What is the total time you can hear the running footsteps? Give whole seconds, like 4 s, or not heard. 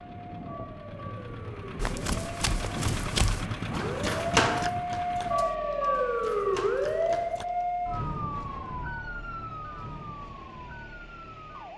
6 s.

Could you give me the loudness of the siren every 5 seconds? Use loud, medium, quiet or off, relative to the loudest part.
medium, loud, quiet.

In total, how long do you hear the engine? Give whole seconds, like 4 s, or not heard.
12 s.